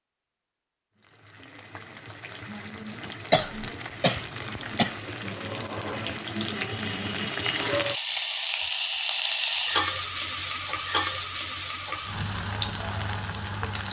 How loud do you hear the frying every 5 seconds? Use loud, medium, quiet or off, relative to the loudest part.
quiet, loud, loud.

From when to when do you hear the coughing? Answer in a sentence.
You can hear the coughing from 3.3 to 5.0 s.